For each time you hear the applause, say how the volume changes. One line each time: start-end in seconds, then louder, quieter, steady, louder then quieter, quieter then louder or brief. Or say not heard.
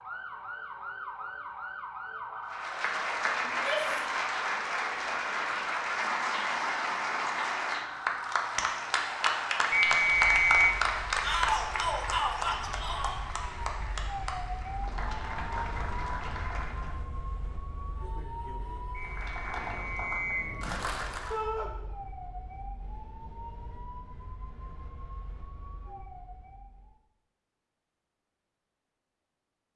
2.5-16.9 quieter
19.0-21.4 brief.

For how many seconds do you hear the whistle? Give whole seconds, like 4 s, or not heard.
3 s.